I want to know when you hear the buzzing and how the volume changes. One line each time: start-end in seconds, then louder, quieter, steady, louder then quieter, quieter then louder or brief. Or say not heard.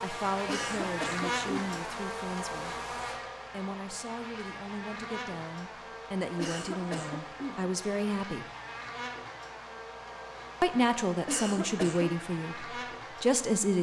0.0-13.7 quieter.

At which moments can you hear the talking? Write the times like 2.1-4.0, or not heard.
0.0-2.8, 3.5-8.4, 10.6-13.7.